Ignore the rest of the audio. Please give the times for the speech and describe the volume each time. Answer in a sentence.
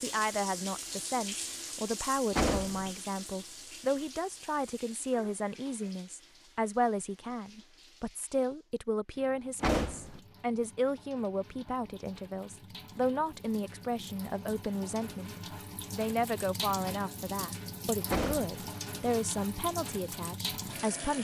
The speech can be heard from 0.0 to 15.3 s, at a steady volume; and from 15.9 to 21.2 s, getting quieter.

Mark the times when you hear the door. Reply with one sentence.
The door can be heard from 2.3 to 2.9 s, from 9.6 to 10.2 s and from 18.1 to 18.6 s.